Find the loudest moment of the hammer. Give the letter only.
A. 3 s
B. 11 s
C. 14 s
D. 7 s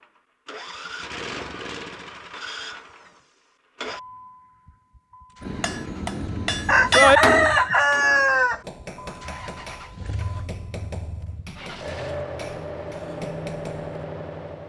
D.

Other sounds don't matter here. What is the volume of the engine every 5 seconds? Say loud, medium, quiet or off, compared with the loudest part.
loud, medium, loud.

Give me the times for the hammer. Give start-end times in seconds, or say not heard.
5.4-13.9.